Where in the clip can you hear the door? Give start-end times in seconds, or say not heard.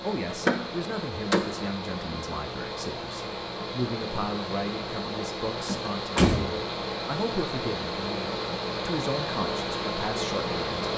0.3-1.6, 5.7-6.6.